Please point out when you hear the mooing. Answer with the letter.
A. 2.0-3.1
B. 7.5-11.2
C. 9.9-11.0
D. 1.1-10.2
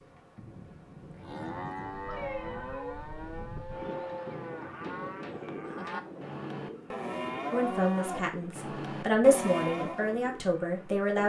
D.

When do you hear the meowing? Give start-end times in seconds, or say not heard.
2.0-3.1.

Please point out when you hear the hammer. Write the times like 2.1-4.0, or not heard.
not heard.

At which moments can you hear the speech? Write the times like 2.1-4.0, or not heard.
7.5-11.2.